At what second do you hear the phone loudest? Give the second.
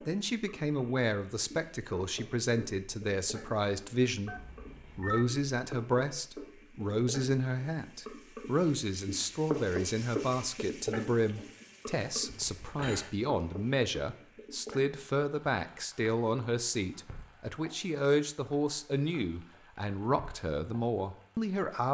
5 s.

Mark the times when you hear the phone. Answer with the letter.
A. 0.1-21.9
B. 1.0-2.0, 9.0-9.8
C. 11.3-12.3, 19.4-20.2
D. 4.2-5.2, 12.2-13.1
D.